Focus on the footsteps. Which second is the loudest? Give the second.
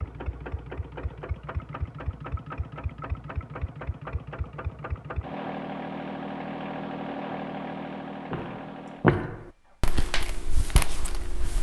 9 s.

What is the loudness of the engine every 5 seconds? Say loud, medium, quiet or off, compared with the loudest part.
loud, loud, off.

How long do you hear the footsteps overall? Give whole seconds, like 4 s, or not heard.
3 s.